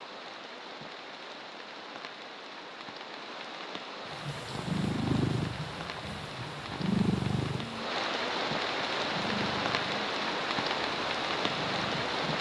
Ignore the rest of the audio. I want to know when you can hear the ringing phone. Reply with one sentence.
You can't hear the ringing phone here.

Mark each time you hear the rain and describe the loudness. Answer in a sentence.
The rain can be heard from 0.0 to 12.3 s, getting louder.